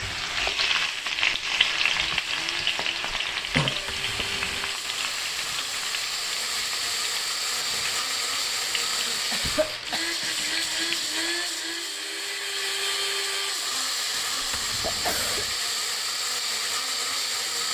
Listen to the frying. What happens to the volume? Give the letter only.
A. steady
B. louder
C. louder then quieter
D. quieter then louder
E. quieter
E.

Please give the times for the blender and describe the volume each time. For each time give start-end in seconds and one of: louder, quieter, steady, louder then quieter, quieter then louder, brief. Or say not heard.
0.1-17.6 louder.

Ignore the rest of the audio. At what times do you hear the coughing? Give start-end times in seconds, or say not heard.
3.5-4.0, 9.3-10.1, 14.1-15.4.